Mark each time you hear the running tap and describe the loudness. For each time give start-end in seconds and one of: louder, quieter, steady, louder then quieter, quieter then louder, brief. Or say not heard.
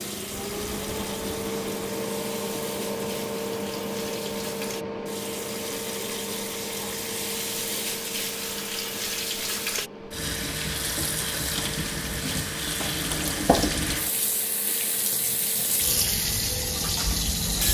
0.0-17.6 louder.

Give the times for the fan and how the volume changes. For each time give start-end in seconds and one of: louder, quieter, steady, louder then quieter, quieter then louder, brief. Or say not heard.
0.0-17.4 quieter.